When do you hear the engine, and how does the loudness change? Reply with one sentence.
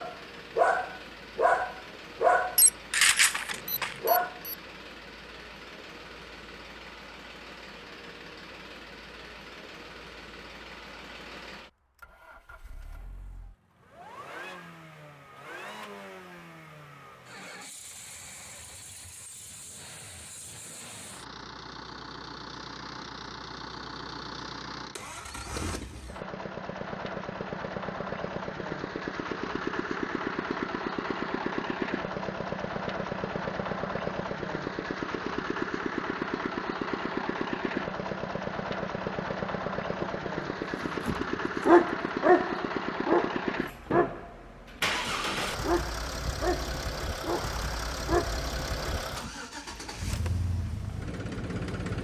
You can hear the engine from 0.0 to 51.9 s, getting louder.